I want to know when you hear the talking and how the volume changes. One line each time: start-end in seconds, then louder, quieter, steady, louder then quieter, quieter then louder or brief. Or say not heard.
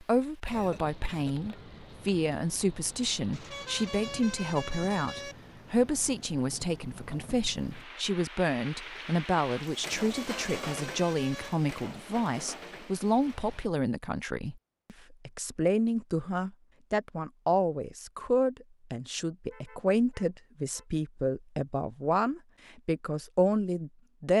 0.0-24.3 steady.